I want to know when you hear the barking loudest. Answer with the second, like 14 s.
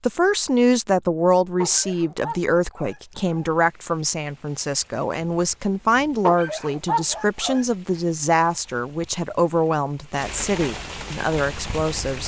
7 s.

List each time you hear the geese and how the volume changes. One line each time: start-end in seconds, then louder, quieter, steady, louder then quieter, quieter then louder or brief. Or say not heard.
not heard.